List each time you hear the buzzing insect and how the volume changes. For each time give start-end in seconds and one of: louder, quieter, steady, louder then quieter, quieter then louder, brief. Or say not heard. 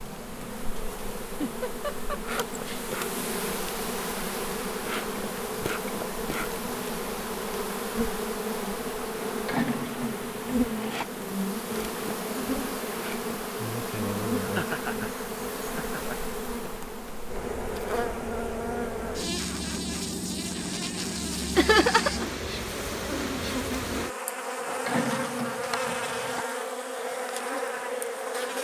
0.0-28.5 steady.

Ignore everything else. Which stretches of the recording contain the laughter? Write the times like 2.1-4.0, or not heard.
1.2-2.9, 14.4-16.1, 21.6-22.2.